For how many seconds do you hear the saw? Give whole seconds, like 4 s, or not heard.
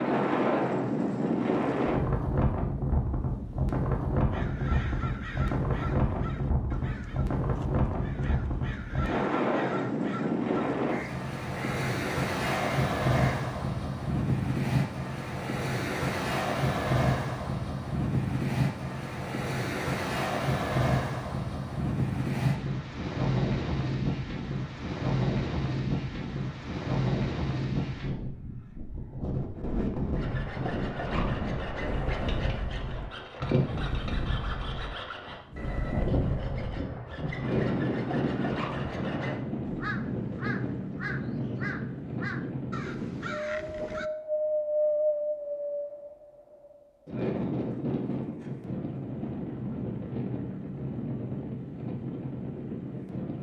9 s.